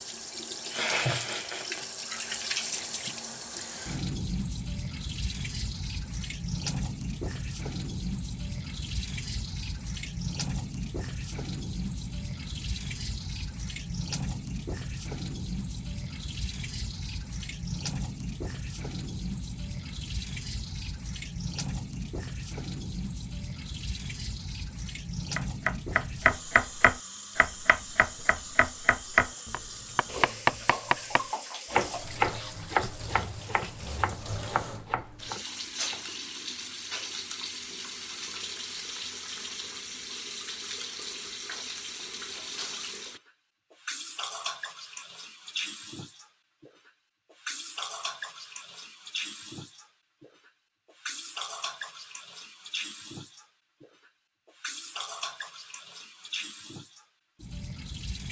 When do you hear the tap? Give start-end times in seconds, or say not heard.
0.0-58.2.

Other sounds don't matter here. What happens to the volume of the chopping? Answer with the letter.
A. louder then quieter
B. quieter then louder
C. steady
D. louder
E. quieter
E.